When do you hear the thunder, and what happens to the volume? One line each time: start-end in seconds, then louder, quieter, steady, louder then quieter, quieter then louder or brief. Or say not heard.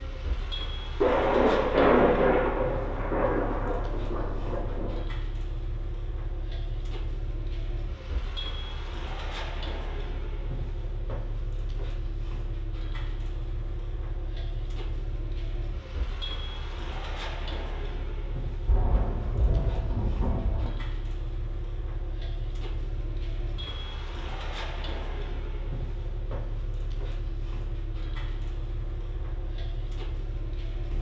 0.9-5.0 quieter
18.6-20.7 brief.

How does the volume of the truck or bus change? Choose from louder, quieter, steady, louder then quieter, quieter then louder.
steady.